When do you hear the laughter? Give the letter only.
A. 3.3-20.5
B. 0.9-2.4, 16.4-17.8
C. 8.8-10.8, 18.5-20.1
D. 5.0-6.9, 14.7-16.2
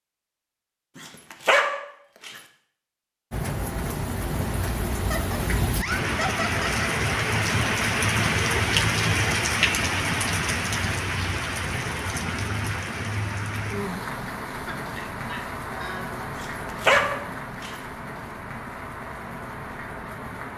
D.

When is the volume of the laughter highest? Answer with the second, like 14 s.
6 s.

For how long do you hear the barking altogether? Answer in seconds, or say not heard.
3 s.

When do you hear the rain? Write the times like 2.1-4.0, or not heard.
3.3-20.5.